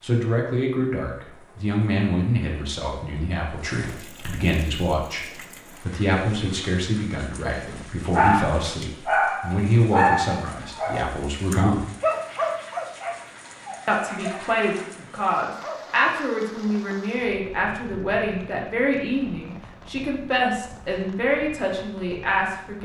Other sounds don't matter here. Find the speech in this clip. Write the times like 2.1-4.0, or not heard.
0.0-11.8, 13.8-22.8.